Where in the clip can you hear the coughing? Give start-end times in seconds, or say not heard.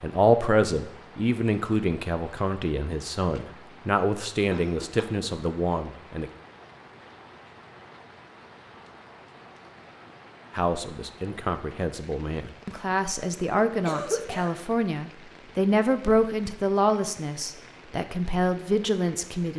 4.5-5.2, 13.8-14.6.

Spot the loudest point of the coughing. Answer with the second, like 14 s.
14 s.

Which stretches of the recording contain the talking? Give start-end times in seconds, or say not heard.
0.0-6.3, 10.6-19.5.